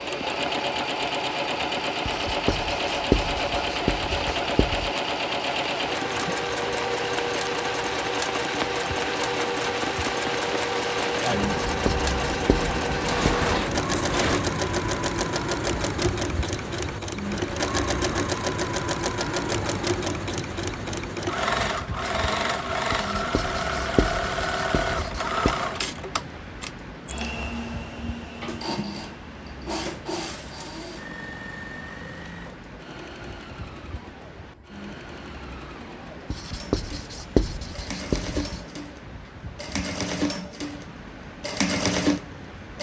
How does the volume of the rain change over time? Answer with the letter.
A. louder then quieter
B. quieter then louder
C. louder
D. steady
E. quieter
E.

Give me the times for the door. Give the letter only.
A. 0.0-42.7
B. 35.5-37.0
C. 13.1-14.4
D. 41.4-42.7
C.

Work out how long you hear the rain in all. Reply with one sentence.
The rain can be heard for 43 seconds in total.